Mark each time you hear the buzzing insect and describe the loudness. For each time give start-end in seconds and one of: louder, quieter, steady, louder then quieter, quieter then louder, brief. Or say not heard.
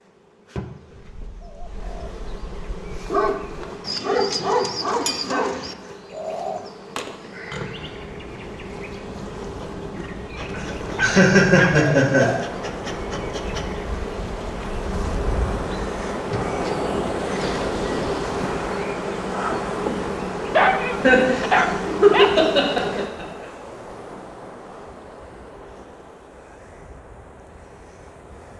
0.0-23.1 louder.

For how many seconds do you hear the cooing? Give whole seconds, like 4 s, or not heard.
6 s.